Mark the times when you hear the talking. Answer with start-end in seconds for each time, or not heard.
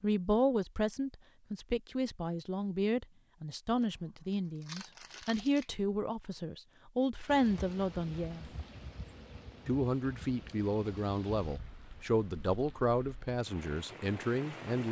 0.0-8.4, 9.7-14.8.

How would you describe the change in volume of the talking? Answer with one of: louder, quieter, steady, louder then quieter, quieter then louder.
steady.